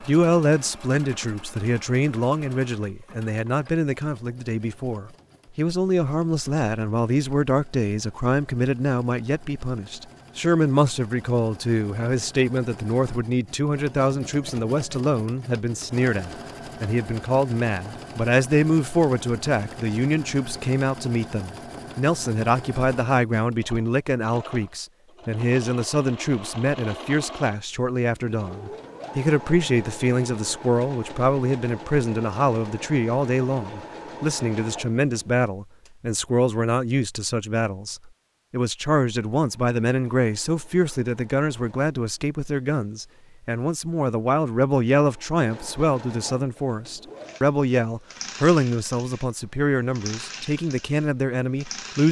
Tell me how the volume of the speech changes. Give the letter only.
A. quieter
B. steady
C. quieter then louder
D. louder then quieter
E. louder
B.